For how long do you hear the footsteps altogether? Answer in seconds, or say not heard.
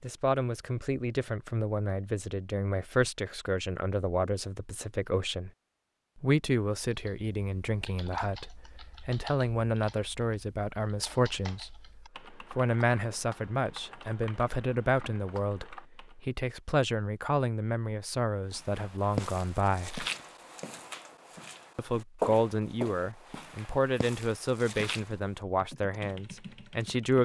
7 s.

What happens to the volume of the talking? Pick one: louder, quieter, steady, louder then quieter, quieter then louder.
steady.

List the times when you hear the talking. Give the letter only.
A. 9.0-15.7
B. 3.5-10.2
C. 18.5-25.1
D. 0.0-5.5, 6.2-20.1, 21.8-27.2
D.